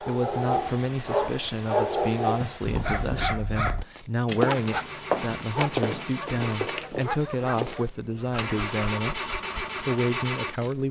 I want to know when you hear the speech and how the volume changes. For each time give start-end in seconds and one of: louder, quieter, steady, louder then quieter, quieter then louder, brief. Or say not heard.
0.0-10.8 steady.